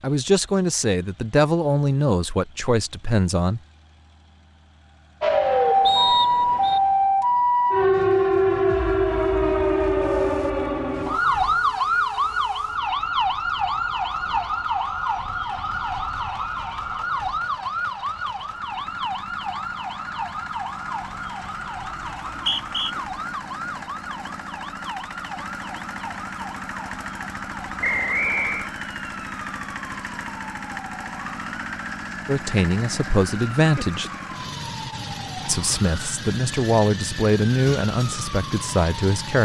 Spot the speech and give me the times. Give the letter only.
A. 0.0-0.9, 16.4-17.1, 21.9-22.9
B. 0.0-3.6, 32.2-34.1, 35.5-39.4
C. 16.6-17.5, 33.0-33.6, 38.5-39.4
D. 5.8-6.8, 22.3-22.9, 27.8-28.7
B.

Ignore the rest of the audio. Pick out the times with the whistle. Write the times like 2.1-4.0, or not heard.
5.8-6.8, 22.3-22.9, 27.8-28.7.